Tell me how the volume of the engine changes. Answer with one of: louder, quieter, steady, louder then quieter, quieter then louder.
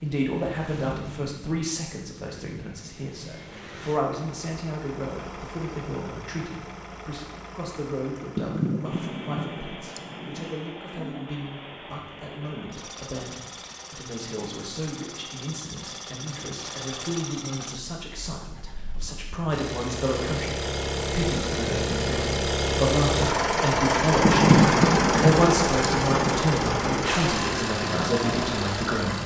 louder.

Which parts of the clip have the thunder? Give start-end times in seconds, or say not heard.
8.3-10.5, 24.2-26.4.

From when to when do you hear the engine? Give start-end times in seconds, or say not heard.
0.0-29.2.